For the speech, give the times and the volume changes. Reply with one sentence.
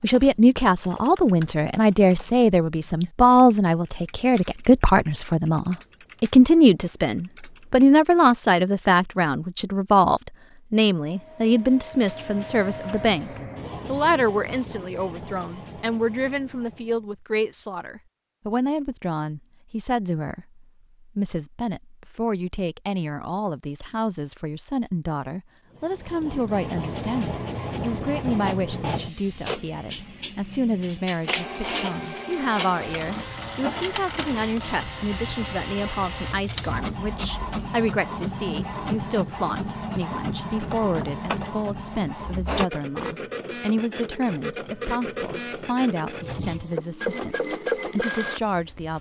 You can hear the speech from 0.0 to 48.9 s, getting quieter.